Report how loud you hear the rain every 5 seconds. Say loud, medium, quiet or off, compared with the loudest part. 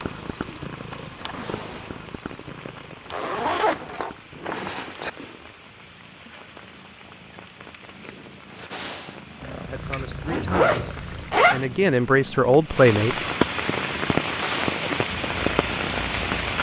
quiet, quiet, loud, loud.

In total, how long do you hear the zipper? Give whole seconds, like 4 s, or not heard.
4 s.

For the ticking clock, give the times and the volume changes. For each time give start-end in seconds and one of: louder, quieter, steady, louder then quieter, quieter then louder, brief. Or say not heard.
not heard.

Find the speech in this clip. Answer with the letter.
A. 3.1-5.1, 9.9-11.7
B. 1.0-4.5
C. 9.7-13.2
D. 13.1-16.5
C.